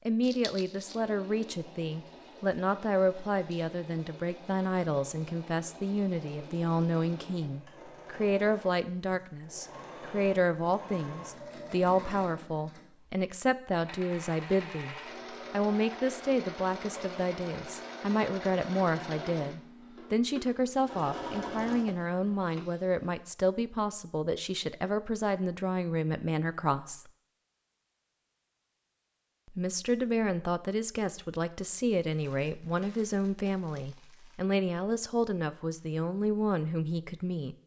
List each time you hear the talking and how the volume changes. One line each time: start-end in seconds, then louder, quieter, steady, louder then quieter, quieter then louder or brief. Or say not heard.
0.1-27.1 steady
29.5-37.5 steady.